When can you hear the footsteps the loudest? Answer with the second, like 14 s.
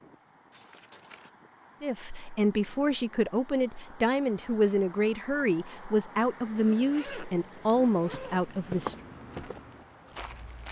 9 s.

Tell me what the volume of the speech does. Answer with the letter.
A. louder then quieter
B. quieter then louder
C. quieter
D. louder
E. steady
E.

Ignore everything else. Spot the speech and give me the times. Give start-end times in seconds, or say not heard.
1.8-8.9.